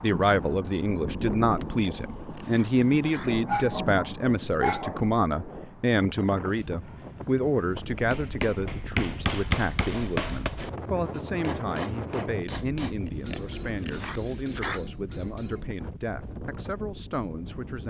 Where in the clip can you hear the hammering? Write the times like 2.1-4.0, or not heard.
8.1-15.8.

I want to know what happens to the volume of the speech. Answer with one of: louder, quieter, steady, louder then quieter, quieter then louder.
quieter.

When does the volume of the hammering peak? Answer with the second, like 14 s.
9 s.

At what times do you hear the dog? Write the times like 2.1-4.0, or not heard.
3.1-5.2.